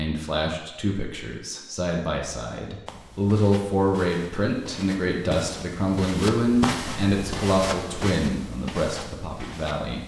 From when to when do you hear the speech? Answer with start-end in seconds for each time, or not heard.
0.0-10.0.